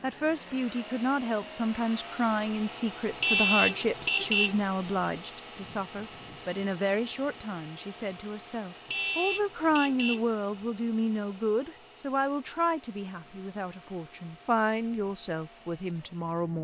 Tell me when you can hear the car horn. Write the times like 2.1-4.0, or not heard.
3.2-4.6, 8.8-10.3.